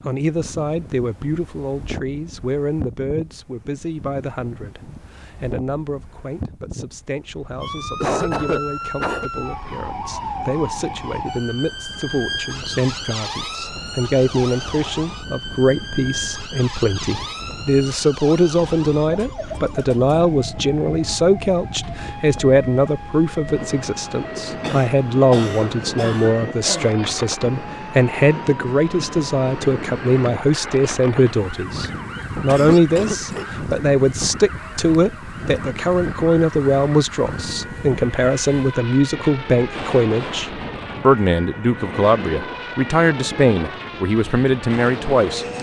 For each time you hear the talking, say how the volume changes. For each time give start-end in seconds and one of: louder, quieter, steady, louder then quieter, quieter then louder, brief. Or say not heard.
0.1-45.5 louder.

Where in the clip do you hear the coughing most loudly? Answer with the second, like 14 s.
8 s.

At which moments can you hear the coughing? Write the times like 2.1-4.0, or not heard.
8.0-9.3, 24.6-26.9, 32.5-33.5.